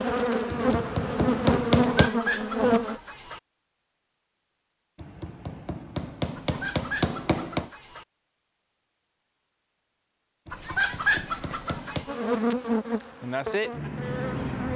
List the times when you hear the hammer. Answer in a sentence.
The hammer can be heard from 0.5 to 2.1 s, from 5.0 to 7.7 s and from 10.4 to 12.1 s.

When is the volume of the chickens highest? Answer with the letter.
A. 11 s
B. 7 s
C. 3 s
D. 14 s
A.